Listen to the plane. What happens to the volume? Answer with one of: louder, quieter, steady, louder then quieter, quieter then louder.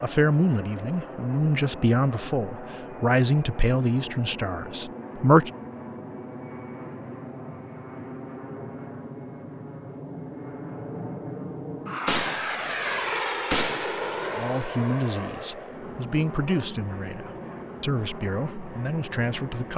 louder then quieter.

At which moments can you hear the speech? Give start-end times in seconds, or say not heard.
0.0-5.5, 14.3-19.7.